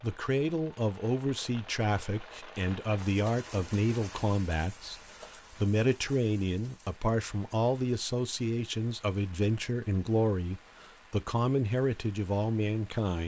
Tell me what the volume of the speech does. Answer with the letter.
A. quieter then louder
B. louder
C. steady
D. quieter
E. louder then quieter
C.